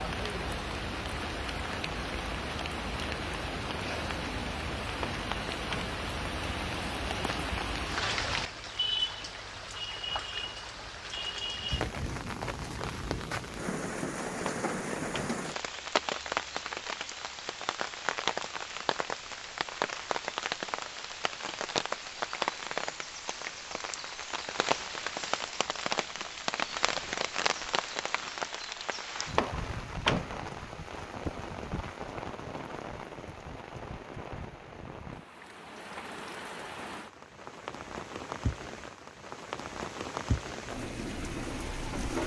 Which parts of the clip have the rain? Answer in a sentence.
The rain can be heard from 0.0 to 42.2 s.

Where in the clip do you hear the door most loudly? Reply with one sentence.
The loudest moment of the door is at 30 seconds.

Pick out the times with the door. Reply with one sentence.
You can hear the door from 5.0 to 6.0 s, from 14.4 to 15.4 s and from 29.4 to 30.5 s.